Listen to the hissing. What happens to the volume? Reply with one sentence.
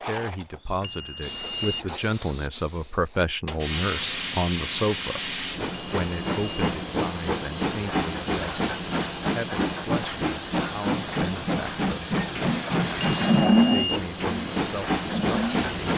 The volume of the hissing goes up.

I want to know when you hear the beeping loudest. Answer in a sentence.
The volume of the beeping peaks at 13 seconds.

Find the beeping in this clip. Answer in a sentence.
The beeping can be heard from 0.8 to 1.8 s, from 5.7 to 6.7 s and from 13.0 to 14.1 s.